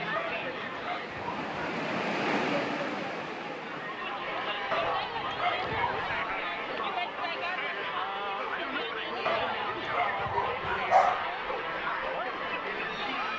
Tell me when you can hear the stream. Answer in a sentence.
You can hear the stream from 0.2 to 7.9 s.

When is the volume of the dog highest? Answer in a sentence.
The loudest moment of the dog is at 11 seconds.